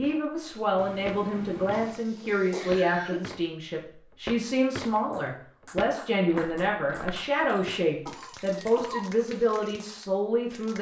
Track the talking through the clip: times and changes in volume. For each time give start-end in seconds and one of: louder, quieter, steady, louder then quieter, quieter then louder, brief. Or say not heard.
0.0-10.7 steady.